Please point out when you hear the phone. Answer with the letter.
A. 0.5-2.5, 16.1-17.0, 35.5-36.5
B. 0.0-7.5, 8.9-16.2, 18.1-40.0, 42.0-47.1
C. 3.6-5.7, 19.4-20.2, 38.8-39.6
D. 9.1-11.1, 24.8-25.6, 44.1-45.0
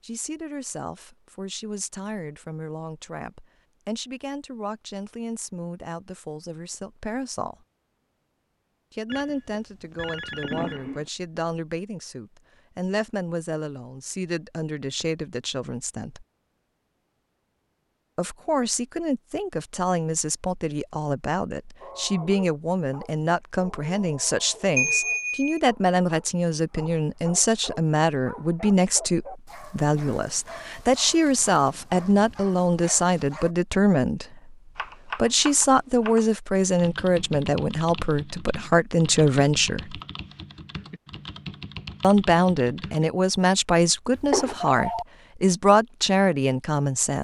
D.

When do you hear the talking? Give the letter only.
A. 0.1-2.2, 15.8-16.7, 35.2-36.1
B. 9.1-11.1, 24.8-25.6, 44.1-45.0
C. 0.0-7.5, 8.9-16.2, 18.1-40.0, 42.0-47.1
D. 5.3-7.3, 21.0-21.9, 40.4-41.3
C.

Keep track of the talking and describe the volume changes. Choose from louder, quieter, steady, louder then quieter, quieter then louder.
louder.